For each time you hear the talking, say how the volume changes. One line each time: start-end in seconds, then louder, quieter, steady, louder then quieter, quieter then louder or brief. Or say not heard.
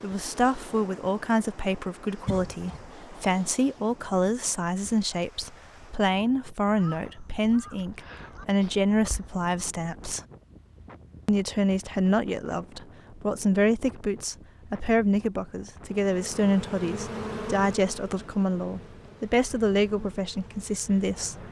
0.0-10.2 steady
11.2-21.4 steady.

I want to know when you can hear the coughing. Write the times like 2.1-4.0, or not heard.
2.2-2.9.